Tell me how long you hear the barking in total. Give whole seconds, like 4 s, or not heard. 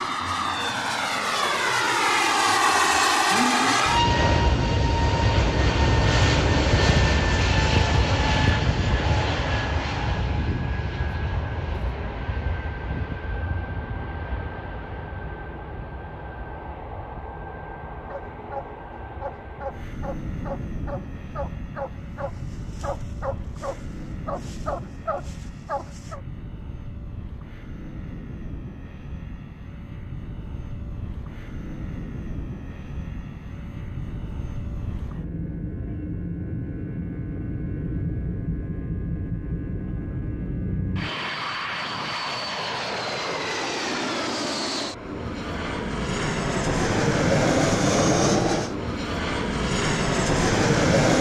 8 s.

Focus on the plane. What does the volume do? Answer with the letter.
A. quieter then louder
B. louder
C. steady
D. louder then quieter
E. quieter
A.